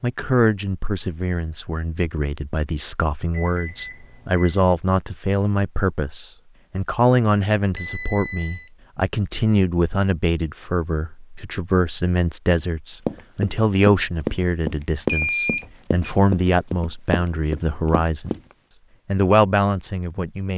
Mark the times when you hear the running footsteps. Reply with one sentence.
The running footsteps can be heard from 13.1 to 18.4 s.